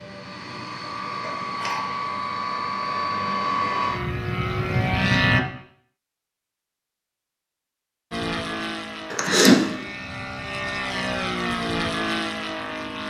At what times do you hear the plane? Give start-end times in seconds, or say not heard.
0.0-5.4, 8.1-13.0.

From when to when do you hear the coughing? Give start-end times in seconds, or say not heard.
1.2-1.9, 9.1-9.6.